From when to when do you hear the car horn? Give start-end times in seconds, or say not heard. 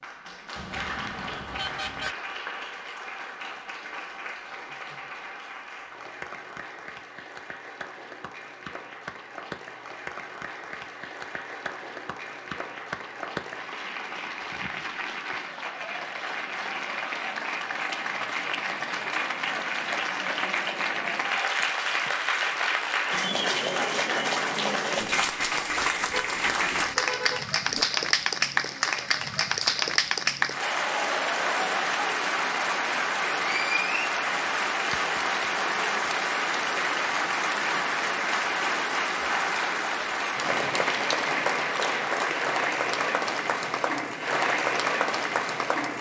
0.6-2.1, 26.1-27.9.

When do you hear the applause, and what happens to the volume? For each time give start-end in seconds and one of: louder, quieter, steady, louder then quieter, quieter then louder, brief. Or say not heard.
0.0-45.9 louder.